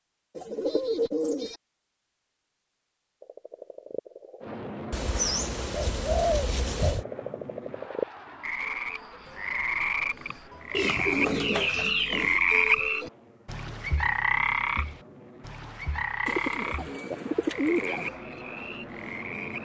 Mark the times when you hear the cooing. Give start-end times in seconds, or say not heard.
0.3-1.6, 4.9-7.0, 10.7-12.4, 16.2-18.1.